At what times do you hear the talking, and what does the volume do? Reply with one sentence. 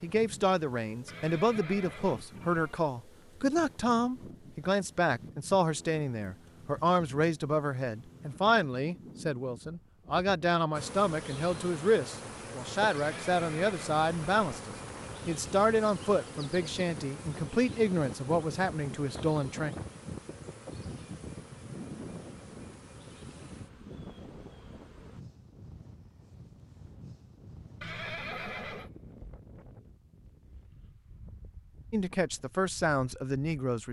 The talking can be heard from 0.0 to 19.8 s, at a steady volume; and briefly from 31.9 to 33.8 s.